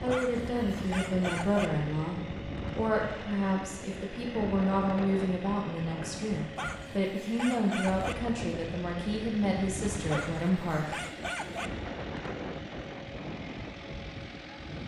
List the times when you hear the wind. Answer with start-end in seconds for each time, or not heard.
0.0-14.8.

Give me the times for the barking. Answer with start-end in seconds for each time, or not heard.
0.1-1.7, 6.5-8.2, 10.1-11.7.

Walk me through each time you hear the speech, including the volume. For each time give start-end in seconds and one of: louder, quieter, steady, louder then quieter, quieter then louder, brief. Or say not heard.
0.0-10.9 steady.